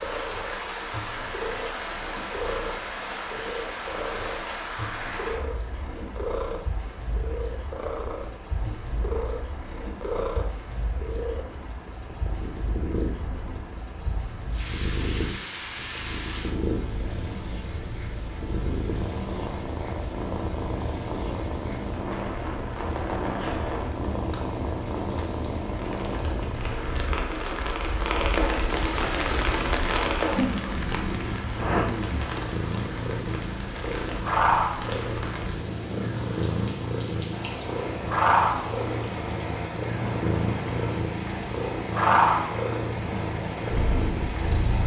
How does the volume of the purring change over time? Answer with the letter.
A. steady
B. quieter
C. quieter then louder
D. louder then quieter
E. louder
E.